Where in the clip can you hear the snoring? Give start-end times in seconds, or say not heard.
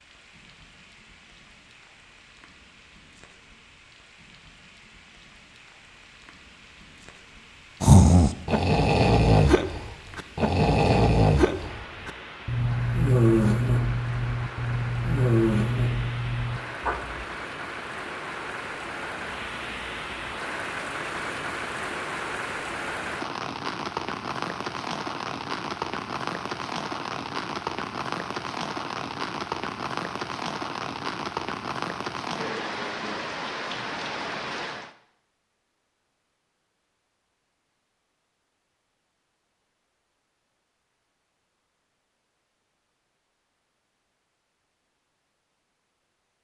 7.8-17.2.